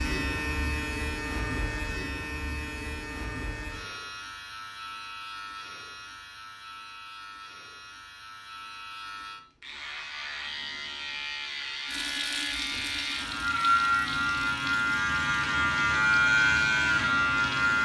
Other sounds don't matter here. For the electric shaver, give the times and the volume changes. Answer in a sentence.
The electric shaver can be heard from 0.0 to 17.8 s, getting quieter then louder.